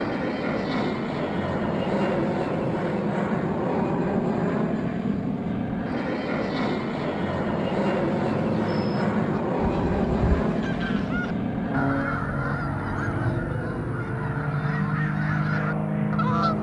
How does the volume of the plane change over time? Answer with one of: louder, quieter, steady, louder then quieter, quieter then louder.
steady.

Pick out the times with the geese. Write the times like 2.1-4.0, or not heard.
8.2-16.5.